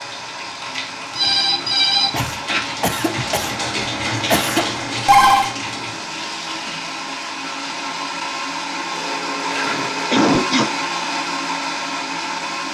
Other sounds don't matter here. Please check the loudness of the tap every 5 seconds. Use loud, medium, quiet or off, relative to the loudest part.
loud, medium, medium.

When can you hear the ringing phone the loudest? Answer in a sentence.
The volume of the ringing phone peaks at 5 seconds.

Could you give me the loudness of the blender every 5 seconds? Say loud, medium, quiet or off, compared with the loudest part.
medium, loud, loud.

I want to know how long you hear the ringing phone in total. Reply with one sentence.
The ringing phone can be heard for 4 seconds in total.